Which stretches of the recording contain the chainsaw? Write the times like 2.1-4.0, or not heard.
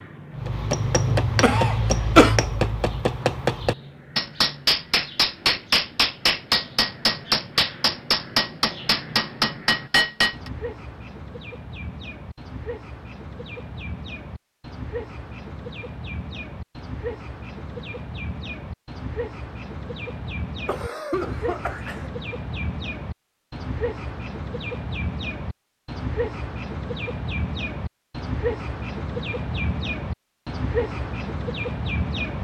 not heard.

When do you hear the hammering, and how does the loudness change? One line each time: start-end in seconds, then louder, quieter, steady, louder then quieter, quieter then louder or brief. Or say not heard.
0.3-10.5 steady.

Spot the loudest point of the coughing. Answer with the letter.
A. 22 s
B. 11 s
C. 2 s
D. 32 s
C.